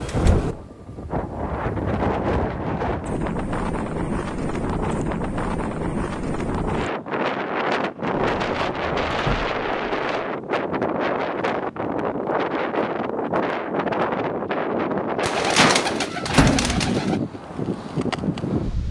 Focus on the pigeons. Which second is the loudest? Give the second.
16 s.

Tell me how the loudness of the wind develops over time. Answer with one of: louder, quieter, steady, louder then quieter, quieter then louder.
steady.